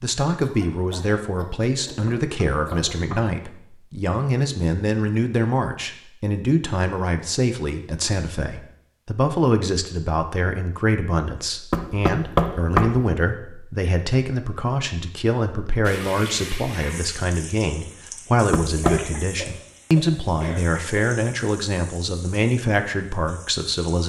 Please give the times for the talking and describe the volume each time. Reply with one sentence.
You can hear the talking from 0.0 to 24.0 s, at a steady volume.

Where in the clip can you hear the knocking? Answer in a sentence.
The knocking can be heard from 2.0 to 3.4 s, from 11.7 to 13.1 s and from 18.5 to 19.1 s.